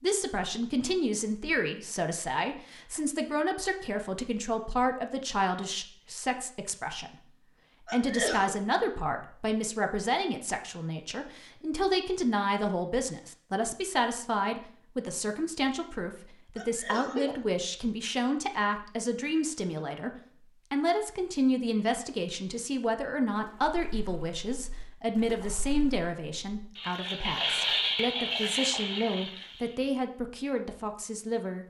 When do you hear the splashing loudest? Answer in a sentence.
The volume of the splashing peaks at 28 seconds.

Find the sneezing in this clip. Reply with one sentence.
You can hear the sneezing from 7.8 to 8.6 s and from 16.6 to 17.4 s.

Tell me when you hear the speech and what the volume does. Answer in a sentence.
You can hear the speech from 0.0 to 31.6 s, at a steady volume.